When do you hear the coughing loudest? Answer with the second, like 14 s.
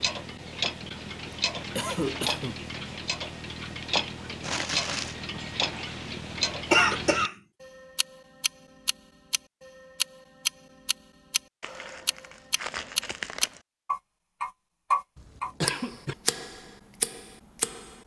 7 s.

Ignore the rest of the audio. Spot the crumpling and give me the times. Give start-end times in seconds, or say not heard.
4.4-5.2, 11.6-13.6.